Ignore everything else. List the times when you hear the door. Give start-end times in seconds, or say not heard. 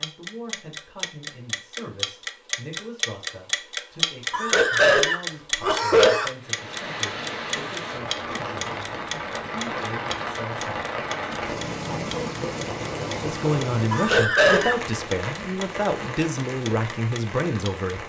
not heard.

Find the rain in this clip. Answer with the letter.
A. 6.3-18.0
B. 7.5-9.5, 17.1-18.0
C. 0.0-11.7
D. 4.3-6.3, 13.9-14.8
A.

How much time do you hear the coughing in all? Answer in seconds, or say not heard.
3 s.